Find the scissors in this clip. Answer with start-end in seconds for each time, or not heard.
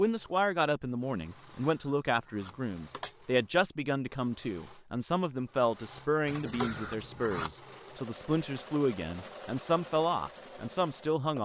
1.4-3.1, 6.2-7.5.